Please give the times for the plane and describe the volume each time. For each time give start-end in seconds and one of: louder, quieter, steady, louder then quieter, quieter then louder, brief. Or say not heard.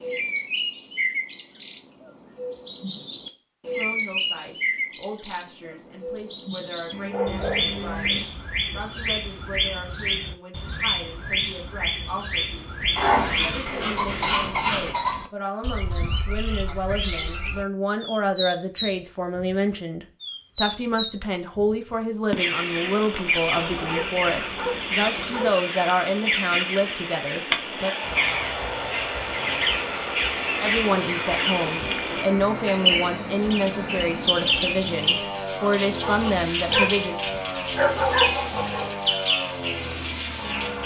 28.0-40.8 steady.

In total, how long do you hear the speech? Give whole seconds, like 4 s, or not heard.
31 s.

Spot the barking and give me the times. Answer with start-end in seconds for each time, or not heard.
6.9-8.2, 12.9-14.9, 23.6-25.6, 36.0-36.9, 37.8-38.9.